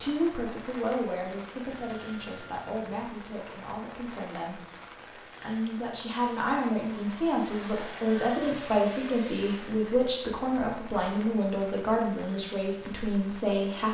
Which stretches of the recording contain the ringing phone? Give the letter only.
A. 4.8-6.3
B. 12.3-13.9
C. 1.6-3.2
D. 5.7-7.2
C.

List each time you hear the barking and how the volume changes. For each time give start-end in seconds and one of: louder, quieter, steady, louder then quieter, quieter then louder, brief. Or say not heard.
not heard.